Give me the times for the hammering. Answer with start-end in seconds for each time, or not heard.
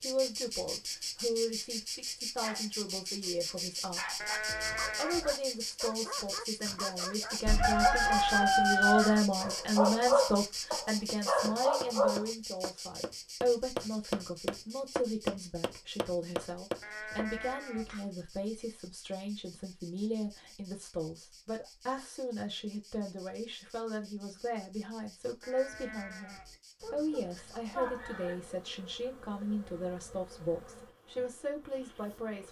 10.4-18.1.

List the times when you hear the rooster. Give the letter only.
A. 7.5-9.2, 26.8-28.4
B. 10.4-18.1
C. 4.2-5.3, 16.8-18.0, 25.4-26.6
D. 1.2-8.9
A.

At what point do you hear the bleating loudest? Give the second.
5 s.